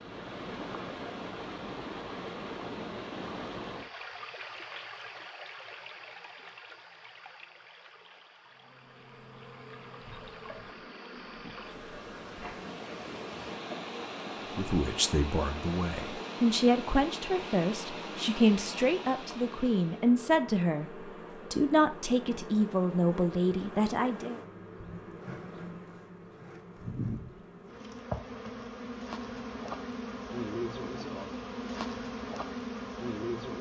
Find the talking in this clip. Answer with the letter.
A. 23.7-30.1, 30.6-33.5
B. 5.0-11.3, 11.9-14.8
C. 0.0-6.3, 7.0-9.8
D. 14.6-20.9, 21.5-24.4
D.